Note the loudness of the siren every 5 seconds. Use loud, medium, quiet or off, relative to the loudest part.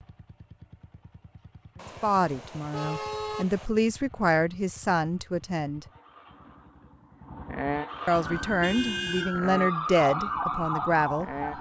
off, loud, loud.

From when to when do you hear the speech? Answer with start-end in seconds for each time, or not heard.
2.0-5.8, 8.1-11.3.